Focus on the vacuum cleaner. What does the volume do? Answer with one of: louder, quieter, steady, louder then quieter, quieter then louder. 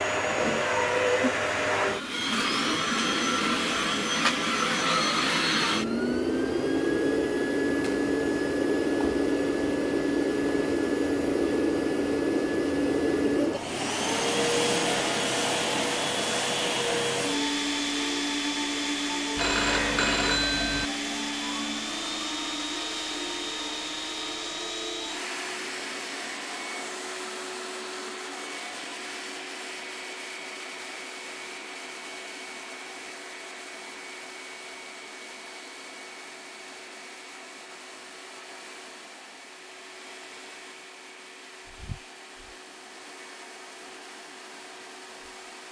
quieter.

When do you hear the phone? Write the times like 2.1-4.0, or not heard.
19.4-20.9.